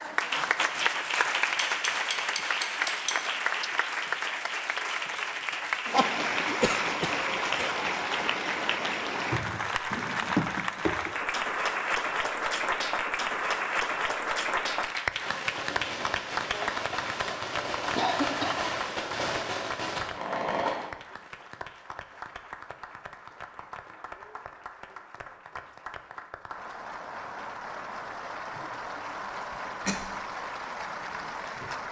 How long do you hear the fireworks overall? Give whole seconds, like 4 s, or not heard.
6 s.